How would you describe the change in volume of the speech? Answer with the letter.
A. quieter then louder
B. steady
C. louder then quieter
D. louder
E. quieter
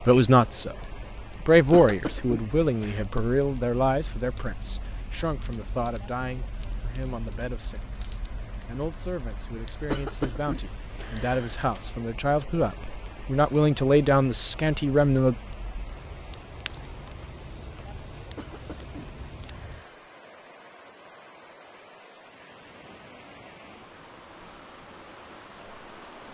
A.